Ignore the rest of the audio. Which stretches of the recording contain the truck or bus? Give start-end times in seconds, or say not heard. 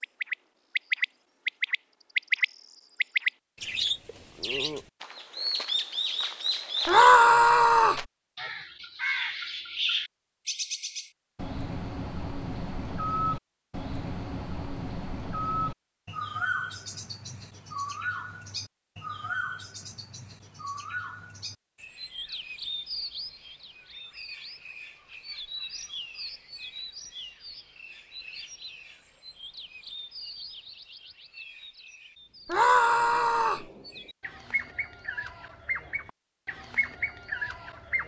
not heard.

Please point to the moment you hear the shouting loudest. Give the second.
7 s.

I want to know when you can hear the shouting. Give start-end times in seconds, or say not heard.
6.8-8.1, 32.5-33.6.